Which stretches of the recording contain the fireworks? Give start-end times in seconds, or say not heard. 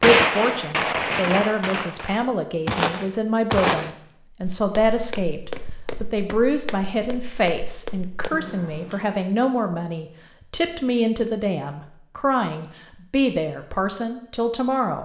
0.0-2.2.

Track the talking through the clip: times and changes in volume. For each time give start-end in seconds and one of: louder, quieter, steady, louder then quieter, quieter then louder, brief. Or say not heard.
0.0-15.0 steady.